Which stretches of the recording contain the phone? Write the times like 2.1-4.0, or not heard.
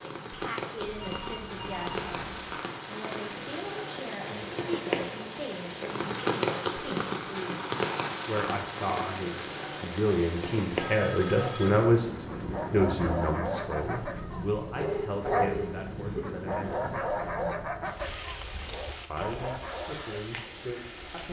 0.8-2.5, 10.8-11.8, 14.8-16.2.